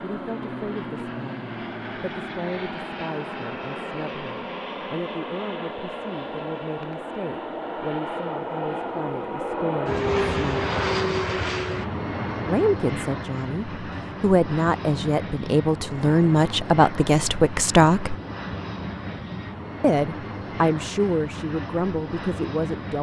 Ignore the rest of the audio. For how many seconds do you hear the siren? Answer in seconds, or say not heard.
not heard.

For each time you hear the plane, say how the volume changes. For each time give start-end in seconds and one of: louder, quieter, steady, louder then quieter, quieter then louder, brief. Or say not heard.
0.0-22.9 louder then quieter.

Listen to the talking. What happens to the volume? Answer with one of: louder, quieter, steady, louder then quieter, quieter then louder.
louder.